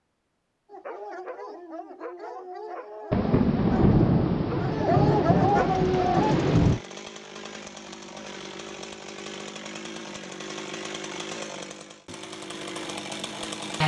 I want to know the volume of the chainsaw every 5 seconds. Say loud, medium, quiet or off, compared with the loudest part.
off, medium, loud.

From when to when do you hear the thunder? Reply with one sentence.
The thunder can be heard from 3.1 to 6.8 s.